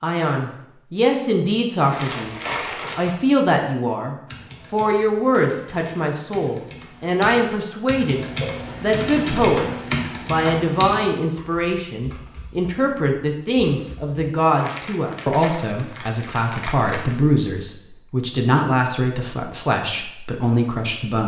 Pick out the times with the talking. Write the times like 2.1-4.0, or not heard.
0.0-21.2.